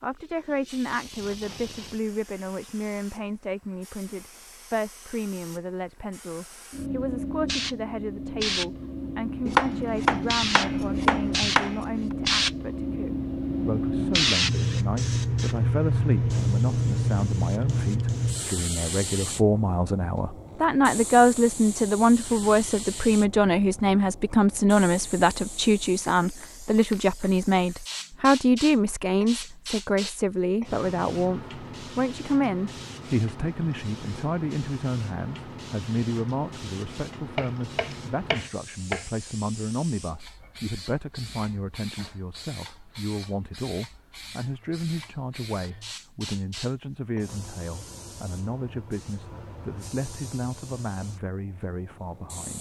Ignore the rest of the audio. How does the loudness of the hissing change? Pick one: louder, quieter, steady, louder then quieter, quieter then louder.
louder then quieter.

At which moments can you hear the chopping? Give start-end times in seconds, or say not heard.
9.4-12.0, 37.4-39.0.